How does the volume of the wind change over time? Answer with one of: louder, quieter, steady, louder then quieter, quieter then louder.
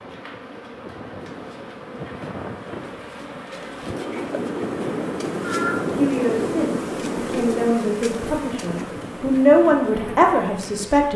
louder then quieter.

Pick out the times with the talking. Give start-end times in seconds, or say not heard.
5.9-11.1.